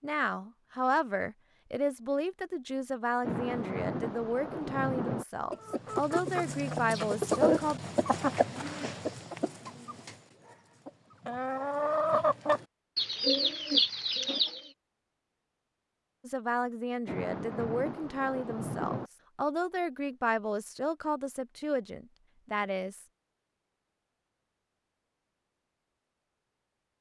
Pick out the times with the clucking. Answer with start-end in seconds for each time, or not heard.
5.5-14.7.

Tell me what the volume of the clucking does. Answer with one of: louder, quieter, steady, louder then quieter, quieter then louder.
quieter then louder.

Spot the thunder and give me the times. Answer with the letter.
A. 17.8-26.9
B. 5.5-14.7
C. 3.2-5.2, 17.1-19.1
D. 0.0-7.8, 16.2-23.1
C.